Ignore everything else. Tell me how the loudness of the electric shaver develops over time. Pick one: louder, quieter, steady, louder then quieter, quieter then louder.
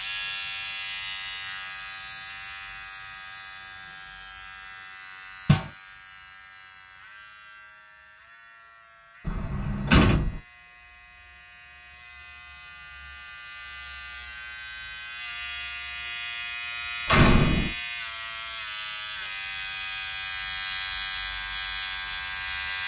quieter then louder.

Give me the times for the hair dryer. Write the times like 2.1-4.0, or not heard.
not heard.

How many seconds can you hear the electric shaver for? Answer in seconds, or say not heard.
23 s.